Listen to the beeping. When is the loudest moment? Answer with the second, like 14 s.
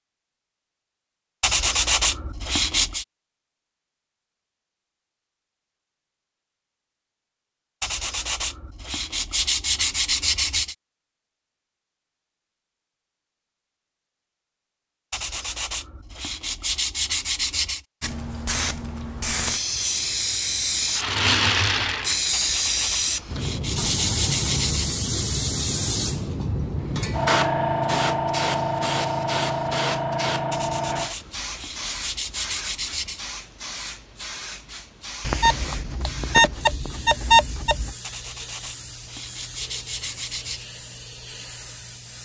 37 s.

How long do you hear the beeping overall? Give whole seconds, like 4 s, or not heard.
3 s.